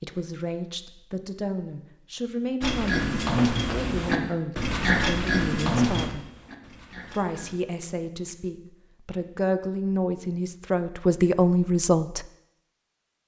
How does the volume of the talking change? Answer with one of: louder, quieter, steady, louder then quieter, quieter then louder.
louder.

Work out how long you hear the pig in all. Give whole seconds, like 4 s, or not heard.
5 s.